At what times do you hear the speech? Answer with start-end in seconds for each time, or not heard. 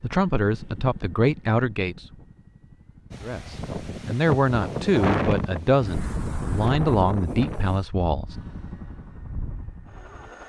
0.0-2.0, 3.2-8.3.